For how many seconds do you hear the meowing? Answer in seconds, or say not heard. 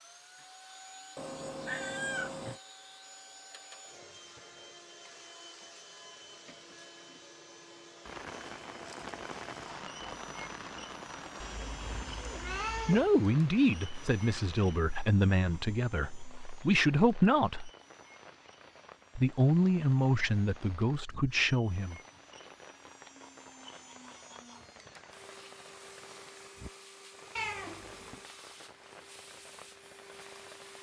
4 s.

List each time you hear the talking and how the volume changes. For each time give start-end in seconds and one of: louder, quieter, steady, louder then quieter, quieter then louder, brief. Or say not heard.
12.8-17.7 quieter then louder
19.1-21.9 brief.